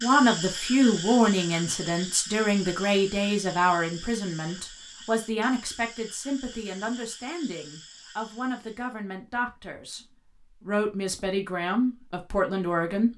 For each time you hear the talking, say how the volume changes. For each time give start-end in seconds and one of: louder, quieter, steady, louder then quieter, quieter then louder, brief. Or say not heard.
0.0-10.0 quieter
10.6-13.1 brief.